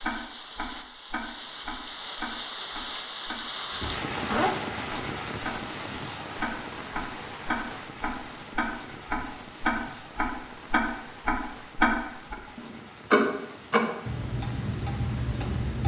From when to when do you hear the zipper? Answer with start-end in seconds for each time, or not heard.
3.7-4.5.